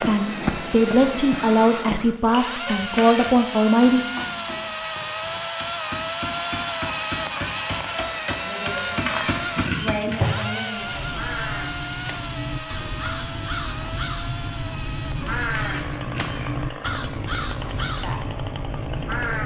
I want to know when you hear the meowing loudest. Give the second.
10 s.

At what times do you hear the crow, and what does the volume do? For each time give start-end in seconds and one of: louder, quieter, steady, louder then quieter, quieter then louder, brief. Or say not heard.
0.0-2.1 brief
10.7-19.4 steady.